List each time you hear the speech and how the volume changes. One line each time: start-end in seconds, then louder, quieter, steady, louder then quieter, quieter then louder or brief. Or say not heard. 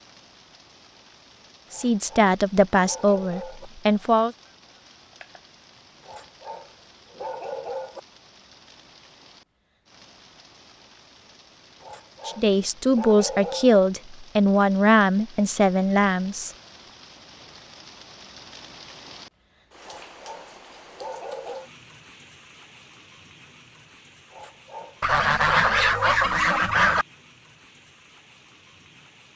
1.7-4.3 brief
12.2-16.5 steady.